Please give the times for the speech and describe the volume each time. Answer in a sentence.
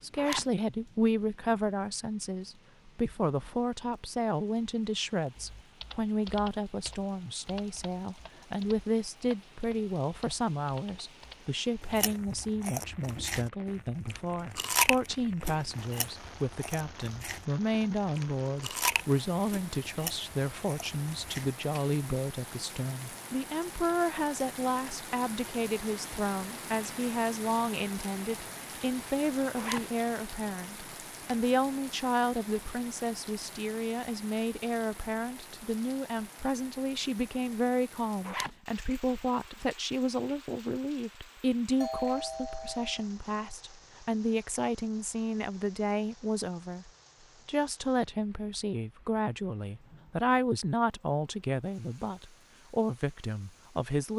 The speech can be heard from 0.0 to 54.1 s, at a steady volume.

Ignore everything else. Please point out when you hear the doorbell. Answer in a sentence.
The doorbell can be heard from 41.8 to 43.0 s.